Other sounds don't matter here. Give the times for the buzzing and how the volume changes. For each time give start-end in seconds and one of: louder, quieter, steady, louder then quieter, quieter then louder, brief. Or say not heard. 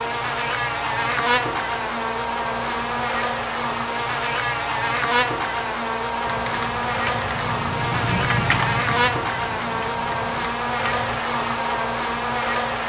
0.0-12.8 steady.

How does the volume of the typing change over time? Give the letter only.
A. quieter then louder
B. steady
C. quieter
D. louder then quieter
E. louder
D.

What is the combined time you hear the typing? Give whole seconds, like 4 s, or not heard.
5 s.